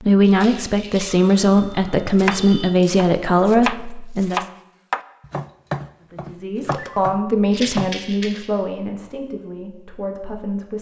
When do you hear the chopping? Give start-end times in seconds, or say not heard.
2.1-8.0.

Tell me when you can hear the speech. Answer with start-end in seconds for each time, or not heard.
0.0-4.5, 6.0-10.7.